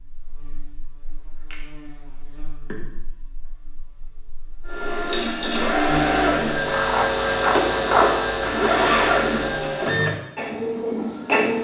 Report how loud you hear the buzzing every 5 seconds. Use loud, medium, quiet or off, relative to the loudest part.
quiet, loud, off.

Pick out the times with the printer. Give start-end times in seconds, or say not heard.
4.7-11.5.